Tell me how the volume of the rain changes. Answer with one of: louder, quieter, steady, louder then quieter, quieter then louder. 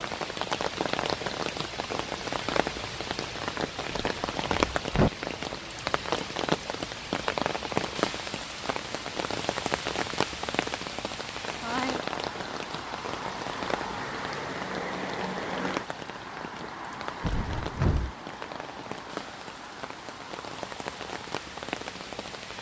quieter.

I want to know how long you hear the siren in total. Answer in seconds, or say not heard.
not heard.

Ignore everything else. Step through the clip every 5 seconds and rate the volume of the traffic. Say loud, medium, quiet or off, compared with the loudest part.
off, off, loud, loud, medium.